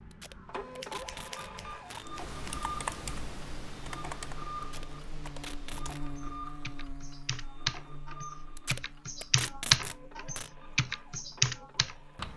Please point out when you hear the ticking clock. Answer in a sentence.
You can't hear the ticking clock here.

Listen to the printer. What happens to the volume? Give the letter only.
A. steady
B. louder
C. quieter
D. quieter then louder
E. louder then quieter
C.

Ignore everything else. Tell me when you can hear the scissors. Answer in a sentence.
You can hear the scissors from 0.8 to 2.6 s.